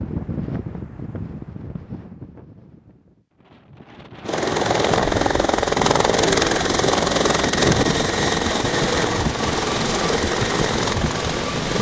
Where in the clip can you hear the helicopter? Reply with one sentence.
You can hear the helicopter from 4.2 to 11.7 s.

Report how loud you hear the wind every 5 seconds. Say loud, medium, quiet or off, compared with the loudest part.
medium, loud, loud.